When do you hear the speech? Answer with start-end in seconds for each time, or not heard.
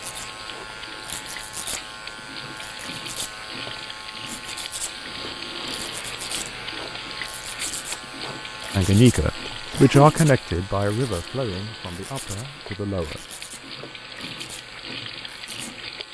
8.8-13.2.